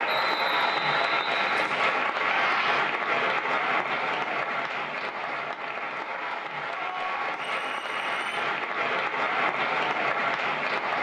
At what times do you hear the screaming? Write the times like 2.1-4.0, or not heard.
2.1-2.8, 6.7-7.5.